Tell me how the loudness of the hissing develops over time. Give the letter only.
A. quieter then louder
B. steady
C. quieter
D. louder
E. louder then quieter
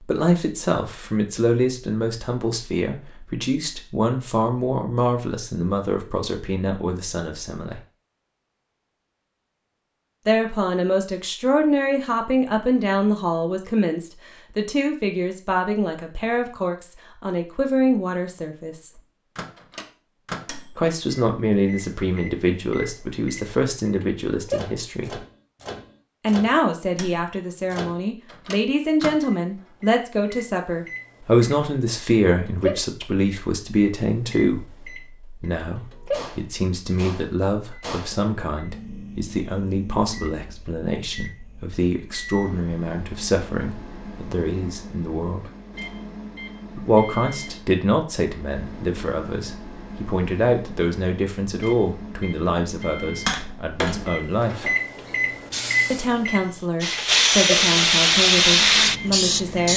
D.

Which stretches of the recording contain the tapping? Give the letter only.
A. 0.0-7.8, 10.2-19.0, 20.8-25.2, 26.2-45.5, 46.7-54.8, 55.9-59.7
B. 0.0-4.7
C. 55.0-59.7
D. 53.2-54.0
D.